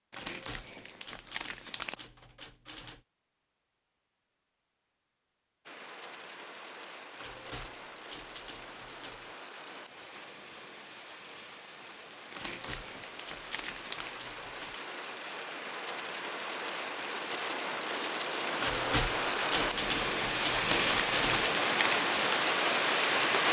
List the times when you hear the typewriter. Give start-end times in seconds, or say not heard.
0.1-3.0, 7.2-9.3, 12.3-14.8, 18.6-21.5.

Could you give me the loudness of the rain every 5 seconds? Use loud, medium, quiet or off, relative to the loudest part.
off, quiet, quiet, medium, loud.